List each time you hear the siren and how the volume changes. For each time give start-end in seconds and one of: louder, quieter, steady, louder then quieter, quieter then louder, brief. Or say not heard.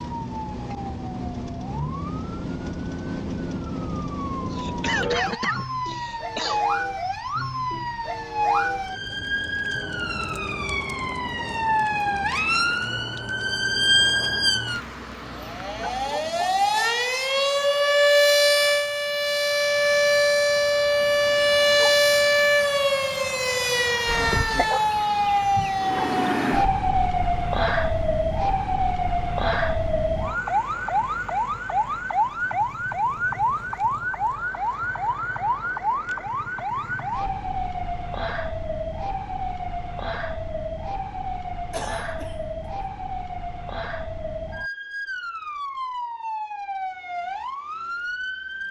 0.0-48.6 louder then quieter.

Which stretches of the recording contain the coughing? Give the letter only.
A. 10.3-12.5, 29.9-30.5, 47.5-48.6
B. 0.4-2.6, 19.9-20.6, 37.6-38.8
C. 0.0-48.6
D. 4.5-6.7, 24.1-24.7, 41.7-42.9
D.